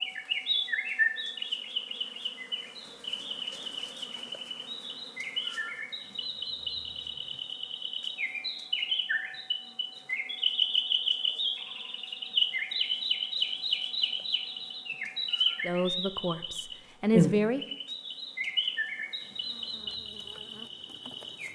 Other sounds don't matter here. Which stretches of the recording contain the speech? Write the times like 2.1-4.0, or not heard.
15.6-17.8.